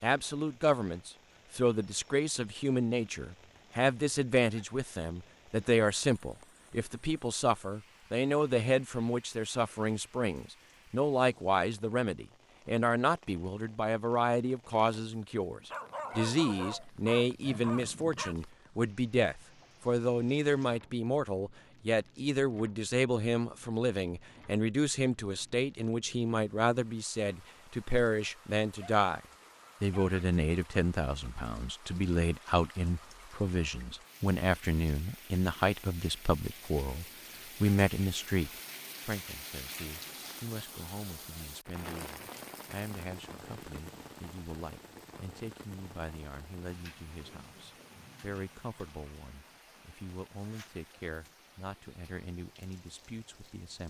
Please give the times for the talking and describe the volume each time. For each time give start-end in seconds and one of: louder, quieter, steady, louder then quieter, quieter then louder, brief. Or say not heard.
0.0-29.2 steady
29.8-53.8 quieter.